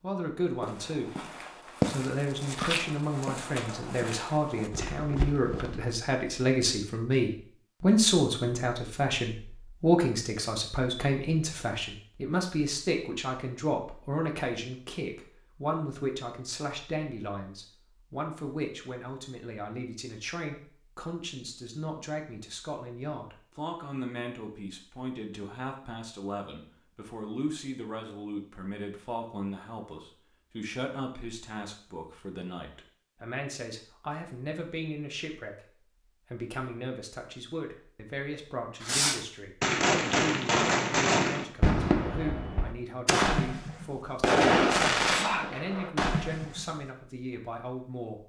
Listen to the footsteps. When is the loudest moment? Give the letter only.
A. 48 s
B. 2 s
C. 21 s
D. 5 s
B.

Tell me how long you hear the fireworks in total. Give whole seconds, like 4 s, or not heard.
8 s.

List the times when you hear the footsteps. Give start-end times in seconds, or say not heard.
0.6-6.0.